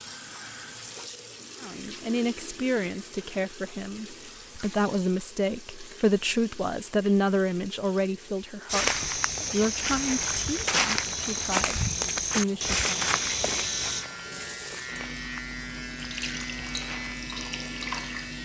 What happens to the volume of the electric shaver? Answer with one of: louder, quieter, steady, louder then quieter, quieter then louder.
steady.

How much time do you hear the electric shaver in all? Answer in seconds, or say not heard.
5 s.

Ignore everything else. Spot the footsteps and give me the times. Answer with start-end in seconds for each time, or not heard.
8.7-17.1.